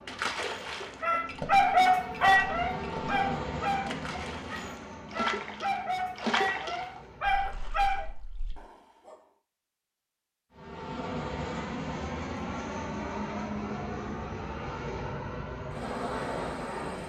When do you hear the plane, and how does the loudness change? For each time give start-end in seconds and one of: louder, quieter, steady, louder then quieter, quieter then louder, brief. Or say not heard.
0.0-8.2 louder then quieter
10.5-17.0 steady.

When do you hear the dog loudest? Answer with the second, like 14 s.
2 s.